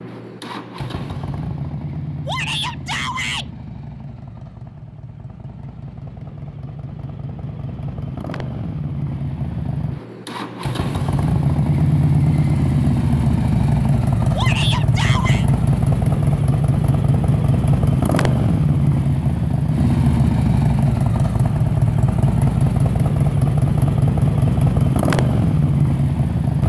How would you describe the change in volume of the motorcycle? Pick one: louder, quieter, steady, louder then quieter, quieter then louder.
louder.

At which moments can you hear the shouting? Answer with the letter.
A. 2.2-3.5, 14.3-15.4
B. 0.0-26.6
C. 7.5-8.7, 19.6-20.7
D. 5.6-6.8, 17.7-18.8
A.